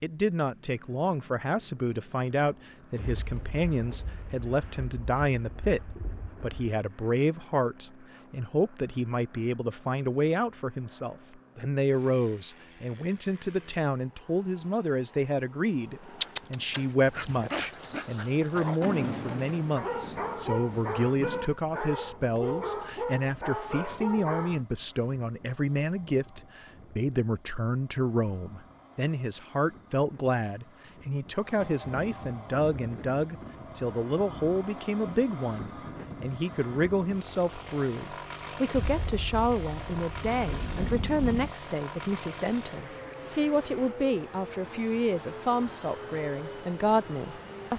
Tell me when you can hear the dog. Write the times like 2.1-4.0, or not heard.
16.0-24.6.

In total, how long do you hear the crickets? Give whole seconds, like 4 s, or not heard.
not heard.